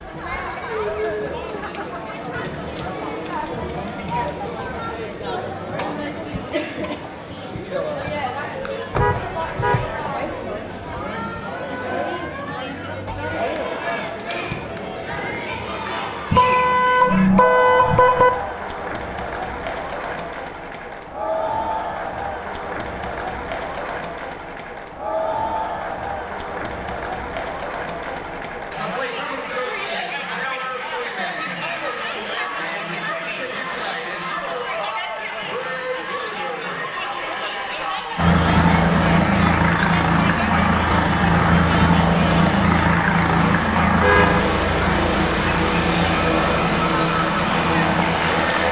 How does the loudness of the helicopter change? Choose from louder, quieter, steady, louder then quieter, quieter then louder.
steady.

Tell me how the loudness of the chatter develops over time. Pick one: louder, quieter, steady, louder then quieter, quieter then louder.
steady.